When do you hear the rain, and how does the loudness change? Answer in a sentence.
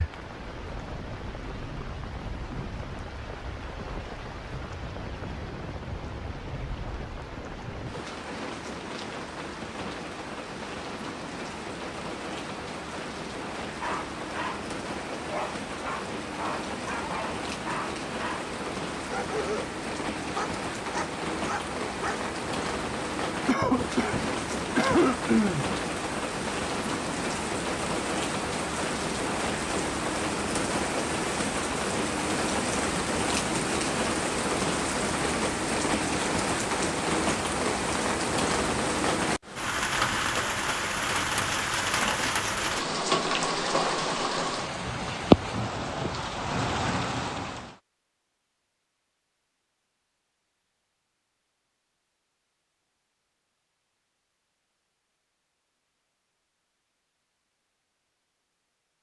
You can hear the rain from 0.0 to 47.8 s, getting louder.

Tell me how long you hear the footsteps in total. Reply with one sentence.
The footsteps can't be heard in this clip.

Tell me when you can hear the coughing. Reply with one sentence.
The coughing can be heard from 23.4 to 25.6 s.